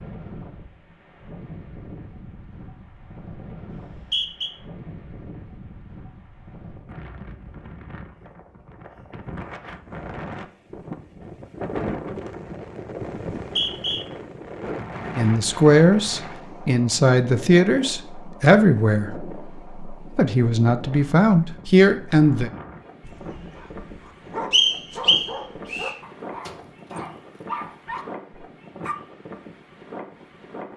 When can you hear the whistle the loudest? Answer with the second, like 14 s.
25 s.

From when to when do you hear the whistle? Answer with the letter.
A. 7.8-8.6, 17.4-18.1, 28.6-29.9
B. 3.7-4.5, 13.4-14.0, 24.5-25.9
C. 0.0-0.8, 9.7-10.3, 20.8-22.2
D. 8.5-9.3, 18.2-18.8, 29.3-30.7
B.